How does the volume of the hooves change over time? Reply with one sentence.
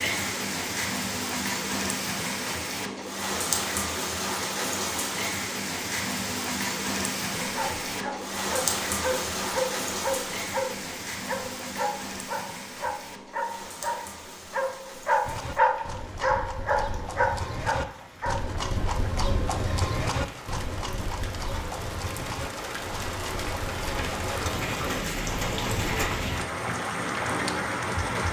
The loudness of the hooves goes up, then down.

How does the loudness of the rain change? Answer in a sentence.
The volume of the rain goes down, then up.